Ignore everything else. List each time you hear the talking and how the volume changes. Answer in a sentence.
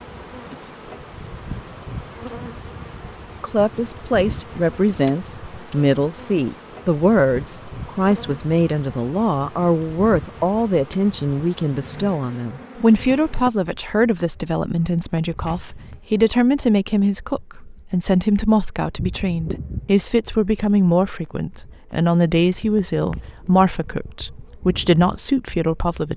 You can hear the talking from 3.4 to 26.1 s, at a steady volume.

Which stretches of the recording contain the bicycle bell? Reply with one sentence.
You can't hear the bicycle bell here.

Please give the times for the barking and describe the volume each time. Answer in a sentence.
You can't hear the barking here.